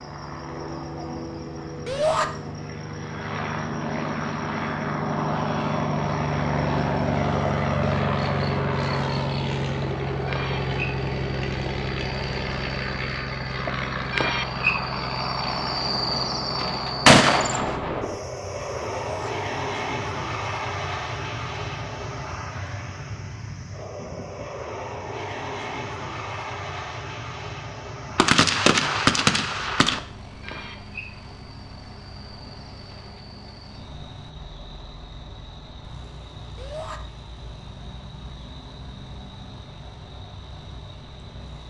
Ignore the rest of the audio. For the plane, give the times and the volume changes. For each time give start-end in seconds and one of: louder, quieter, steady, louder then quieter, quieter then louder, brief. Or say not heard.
0.0-41.6 quieter.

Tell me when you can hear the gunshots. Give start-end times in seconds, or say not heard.
17.1-18.1, 28.1-30.0.